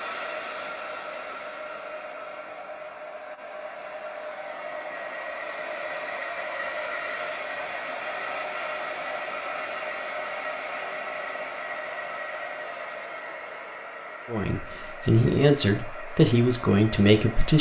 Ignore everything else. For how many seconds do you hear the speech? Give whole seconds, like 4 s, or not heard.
3 s.